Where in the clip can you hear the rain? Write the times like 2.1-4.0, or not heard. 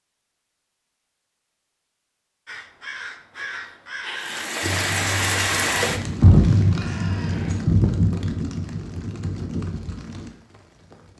4.2-10.9.